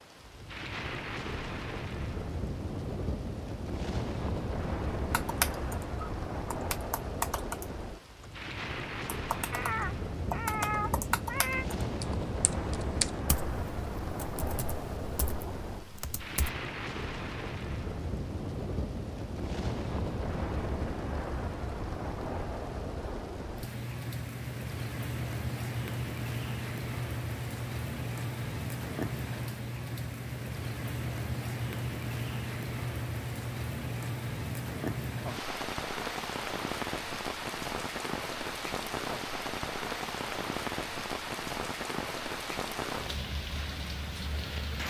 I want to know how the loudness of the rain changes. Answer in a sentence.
The loudness of the rain stays about the same.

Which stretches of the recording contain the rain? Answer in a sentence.
You can hear the rain from 0.0 to 44.8 s.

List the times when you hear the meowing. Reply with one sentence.
The meowing can be heard from 9.5 to 11.7 s.